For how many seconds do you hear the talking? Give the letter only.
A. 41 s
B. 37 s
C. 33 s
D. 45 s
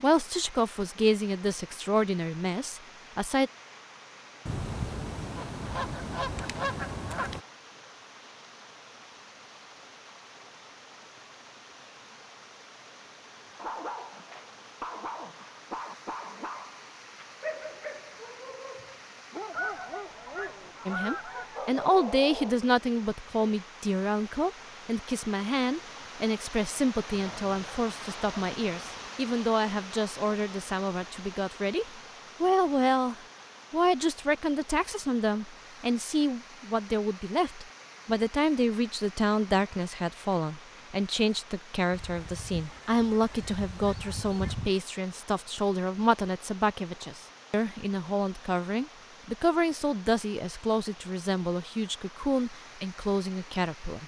B.